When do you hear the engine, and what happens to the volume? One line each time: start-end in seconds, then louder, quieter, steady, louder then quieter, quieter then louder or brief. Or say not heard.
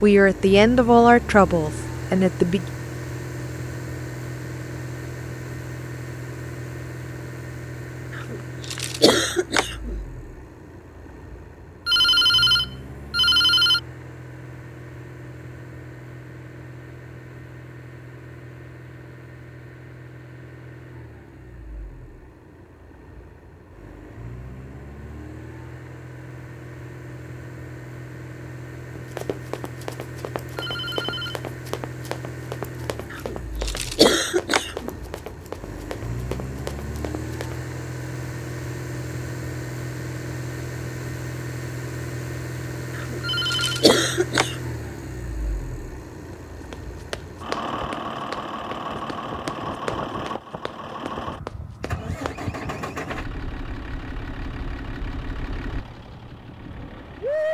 0.0-57.4 quieter then louder.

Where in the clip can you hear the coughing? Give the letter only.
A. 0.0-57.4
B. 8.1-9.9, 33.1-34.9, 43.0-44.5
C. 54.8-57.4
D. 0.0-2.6
B.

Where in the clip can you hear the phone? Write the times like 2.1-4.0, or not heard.
11.8-13.8, 30.6-31.4, 43.2-43.9.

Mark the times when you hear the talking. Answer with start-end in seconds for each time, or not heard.
0.0-2.6.